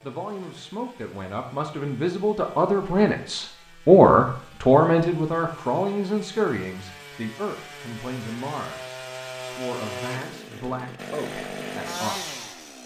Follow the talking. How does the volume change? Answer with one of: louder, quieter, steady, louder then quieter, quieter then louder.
louder then quieter.